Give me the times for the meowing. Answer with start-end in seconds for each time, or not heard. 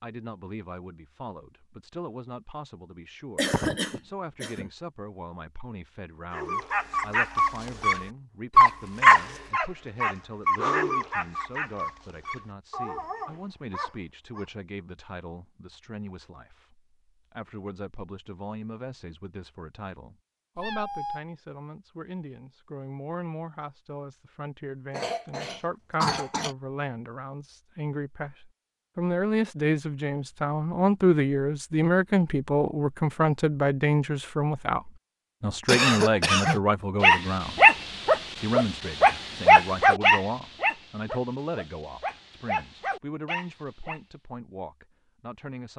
20.6-21.2.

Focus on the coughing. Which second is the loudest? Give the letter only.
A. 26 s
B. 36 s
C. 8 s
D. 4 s
B.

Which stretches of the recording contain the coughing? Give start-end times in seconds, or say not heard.
3.4-4.7, 24.9-26.6, 35.6-36.6.